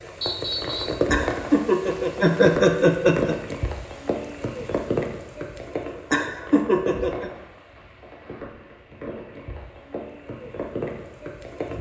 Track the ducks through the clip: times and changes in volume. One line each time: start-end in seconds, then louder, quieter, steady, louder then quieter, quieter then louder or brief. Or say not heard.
not heard.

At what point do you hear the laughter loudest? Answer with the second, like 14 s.
3 s.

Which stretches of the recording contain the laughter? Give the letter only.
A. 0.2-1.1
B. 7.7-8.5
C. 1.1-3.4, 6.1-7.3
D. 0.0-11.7
C.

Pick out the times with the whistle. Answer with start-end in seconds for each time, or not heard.
0.2-1.1.